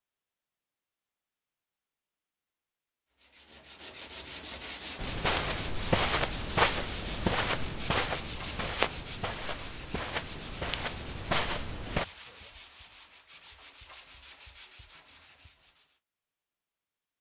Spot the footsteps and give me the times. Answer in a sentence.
You can hear the footsteps from 5.0 to 12.1 s.